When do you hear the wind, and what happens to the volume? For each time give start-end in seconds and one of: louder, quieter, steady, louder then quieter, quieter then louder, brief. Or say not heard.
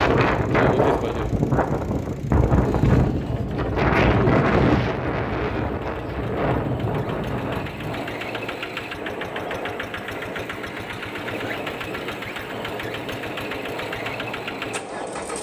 0.0-15.3 quieter.